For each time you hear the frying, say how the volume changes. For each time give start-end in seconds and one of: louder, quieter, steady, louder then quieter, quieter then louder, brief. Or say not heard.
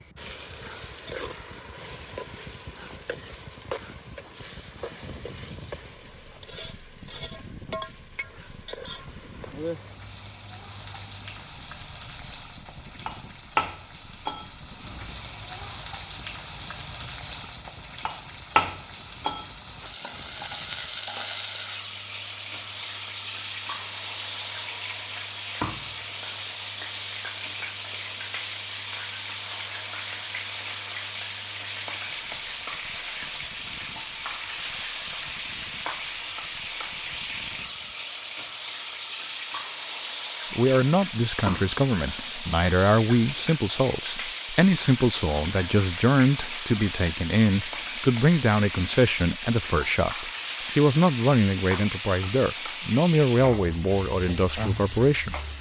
0.0-55.5 louder.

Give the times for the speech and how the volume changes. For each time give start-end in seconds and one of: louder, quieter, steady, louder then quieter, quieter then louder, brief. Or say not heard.
40.5-55.4 steady.